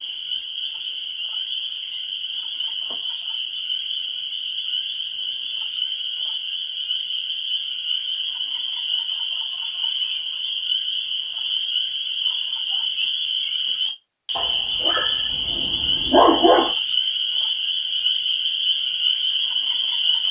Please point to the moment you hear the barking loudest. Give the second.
16 s.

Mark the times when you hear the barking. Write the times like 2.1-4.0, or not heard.
14.3-16.7.